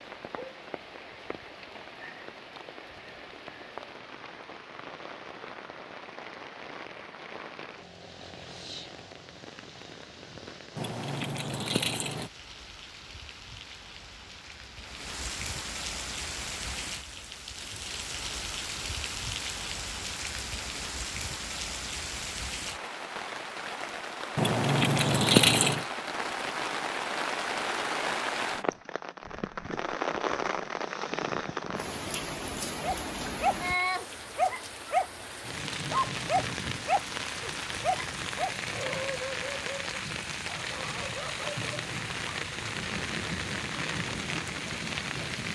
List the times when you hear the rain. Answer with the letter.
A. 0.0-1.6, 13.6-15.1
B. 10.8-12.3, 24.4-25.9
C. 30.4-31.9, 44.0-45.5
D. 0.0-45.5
D.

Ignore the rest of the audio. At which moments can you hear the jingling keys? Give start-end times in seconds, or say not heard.
10.8-12.3, 24.4-25.9.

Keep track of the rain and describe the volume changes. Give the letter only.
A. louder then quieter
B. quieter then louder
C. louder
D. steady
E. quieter
C.